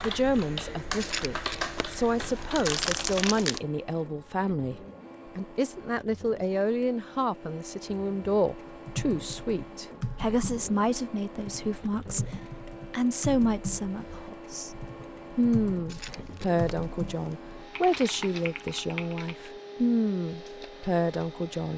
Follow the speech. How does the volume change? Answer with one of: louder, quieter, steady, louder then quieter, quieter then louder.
steady.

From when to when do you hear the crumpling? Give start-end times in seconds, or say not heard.
1.0-3.6, 15.8-17.4.